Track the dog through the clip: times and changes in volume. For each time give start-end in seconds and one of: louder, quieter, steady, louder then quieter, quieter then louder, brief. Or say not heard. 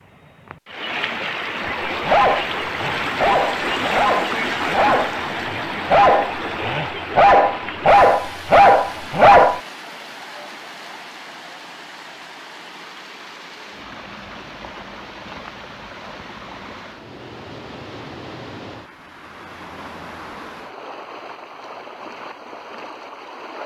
1.9-9.6 louder.